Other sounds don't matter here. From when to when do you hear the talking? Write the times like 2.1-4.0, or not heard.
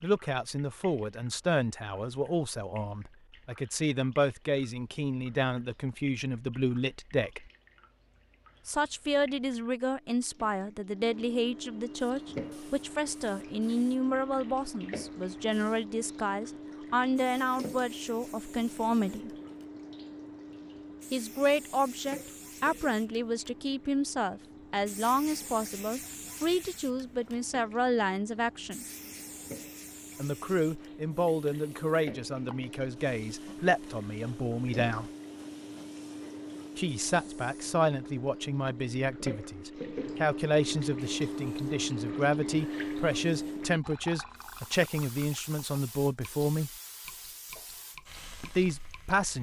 0.0-7.5, 8.7-19.3, 21.1-28.9, 30.1-35.1, 36.8-46.7, 48.4-49.3.